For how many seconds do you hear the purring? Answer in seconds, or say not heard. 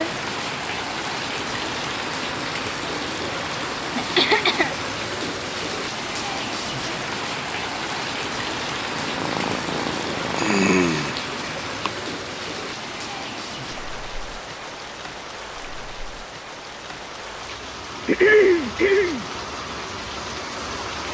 2 s.